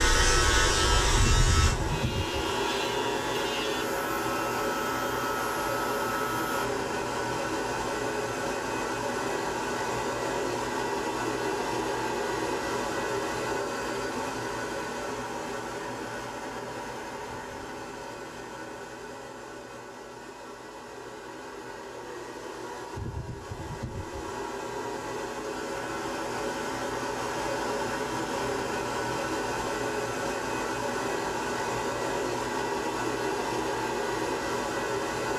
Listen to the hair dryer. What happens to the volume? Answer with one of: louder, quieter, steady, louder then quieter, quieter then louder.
quieter then louder.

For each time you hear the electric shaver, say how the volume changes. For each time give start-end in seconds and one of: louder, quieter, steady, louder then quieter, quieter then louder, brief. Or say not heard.
0.0-6.7 quieter.